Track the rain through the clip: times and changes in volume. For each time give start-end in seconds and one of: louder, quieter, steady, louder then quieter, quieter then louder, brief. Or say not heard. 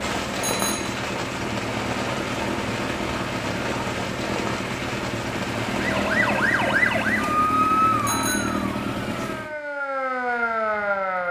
0.0-6.5 steady.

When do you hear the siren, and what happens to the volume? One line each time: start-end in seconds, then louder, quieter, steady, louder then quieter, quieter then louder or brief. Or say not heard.
5.8-11.2 quieter then louder.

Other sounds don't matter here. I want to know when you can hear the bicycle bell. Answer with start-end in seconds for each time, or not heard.
0.4-0.9, 8.1-8.7.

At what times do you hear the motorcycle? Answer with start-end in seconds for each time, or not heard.
0.0-9.6.